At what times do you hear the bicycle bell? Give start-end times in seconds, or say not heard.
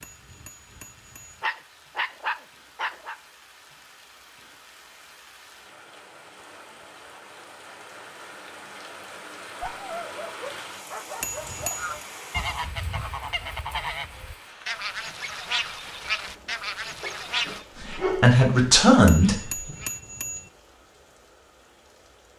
0.0-1.4, 11.2-12.1, 19.1-20.5.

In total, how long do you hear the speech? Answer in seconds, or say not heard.
2 s.